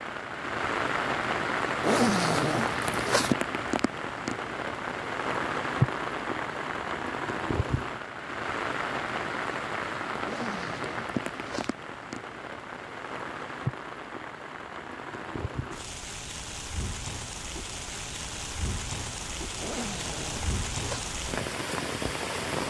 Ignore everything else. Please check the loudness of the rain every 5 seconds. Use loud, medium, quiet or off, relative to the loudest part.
loud, loud, medium, medium, loud.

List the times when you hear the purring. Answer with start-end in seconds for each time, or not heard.
not heard.